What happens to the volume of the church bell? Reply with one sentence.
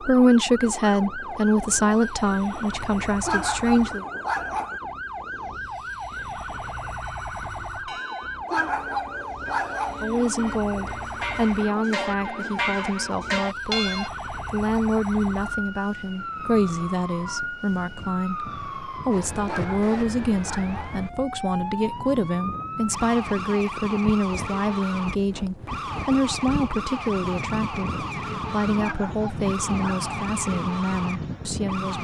The loudness of the church bell goes up.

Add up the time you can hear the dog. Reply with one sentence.
You can hear the dog for 6 seconds altogether.